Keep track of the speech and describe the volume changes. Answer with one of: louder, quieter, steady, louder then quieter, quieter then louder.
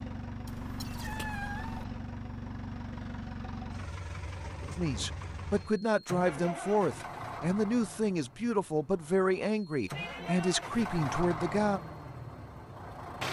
steady.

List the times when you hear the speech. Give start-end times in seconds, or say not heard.
4.8-11.8.